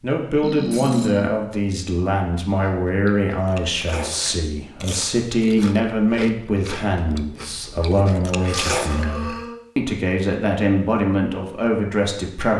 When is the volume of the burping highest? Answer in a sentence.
The loudest moment of the burping is at 1 second.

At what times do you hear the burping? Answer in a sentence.
The burping can be heard from 0.4 to 1.3 s and from 8.4 to 9.6 s.